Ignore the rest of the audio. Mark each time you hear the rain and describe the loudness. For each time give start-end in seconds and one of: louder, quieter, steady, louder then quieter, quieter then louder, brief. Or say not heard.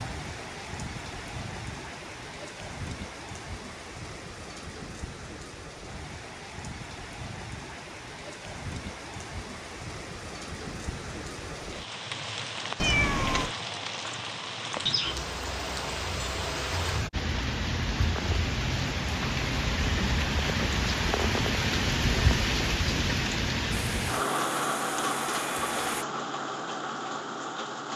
0.0-27.9 louder.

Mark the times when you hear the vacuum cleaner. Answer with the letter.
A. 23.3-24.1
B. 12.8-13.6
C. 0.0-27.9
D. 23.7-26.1
D.